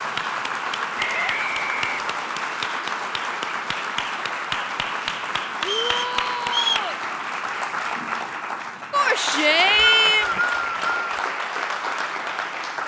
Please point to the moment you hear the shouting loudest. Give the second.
10 s.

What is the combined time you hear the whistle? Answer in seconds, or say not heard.
4 s.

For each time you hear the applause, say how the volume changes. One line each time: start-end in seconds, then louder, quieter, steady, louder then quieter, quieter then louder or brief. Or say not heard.
0.0-12.8 steady.